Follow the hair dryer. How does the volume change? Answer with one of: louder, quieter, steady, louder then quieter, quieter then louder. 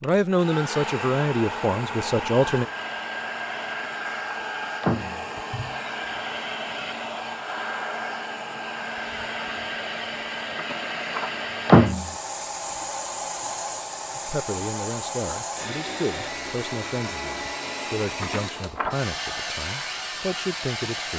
steady.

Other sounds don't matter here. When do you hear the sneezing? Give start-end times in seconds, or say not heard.
not heard.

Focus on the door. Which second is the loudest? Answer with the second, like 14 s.
12 s.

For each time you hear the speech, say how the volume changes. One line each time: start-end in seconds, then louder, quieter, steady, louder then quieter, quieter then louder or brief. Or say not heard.
0.0-2.6 brief
14.2-21.1 steady.